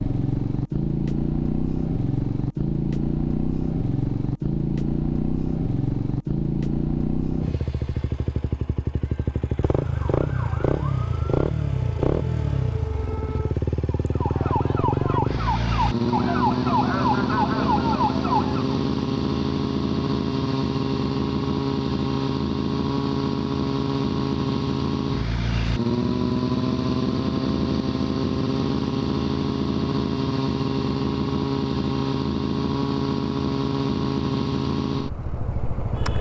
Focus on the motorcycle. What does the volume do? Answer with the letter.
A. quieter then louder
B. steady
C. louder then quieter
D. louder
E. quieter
B.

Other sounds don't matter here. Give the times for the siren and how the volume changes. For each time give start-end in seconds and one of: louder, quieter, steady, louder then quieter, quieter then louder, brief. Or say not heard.
9.6-18.8 louder.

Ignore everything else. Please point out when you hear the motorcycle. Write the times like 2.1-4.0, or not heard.
0.0-36.1.